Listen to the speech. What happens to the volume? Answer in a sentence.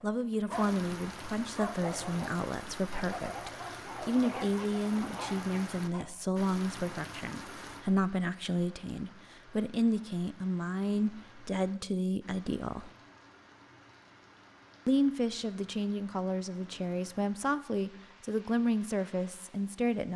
The volume of the speech stays about the same.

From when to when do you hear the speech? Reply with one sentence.
You can hear the speech from 0.0 to 12.9 s and from 14.8 to 20.1 s.